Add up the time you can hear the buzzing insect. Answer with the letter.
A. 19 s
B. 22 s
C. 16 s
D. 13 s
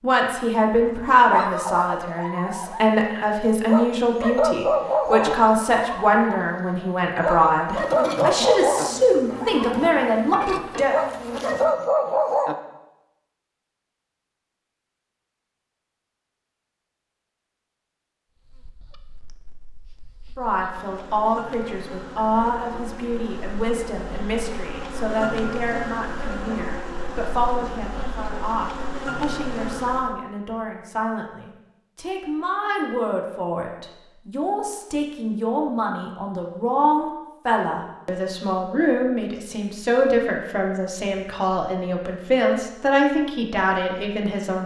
C.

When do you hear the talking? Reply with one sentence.
You can hear the talking from 0.0 to 11.0 s and from 20.4 to 44.6 s.